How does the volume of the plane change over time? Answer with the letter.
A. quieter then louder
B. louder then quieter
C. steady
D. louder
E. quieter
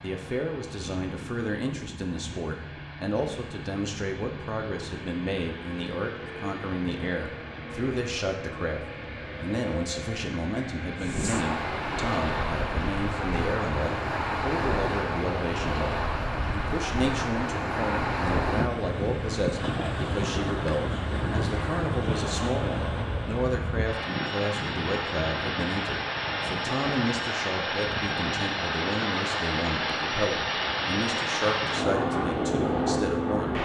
D.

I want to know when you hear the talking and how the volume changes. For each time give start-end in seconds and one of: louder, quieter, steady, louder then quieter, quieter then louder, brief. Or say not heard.
0.0-33.6 steady.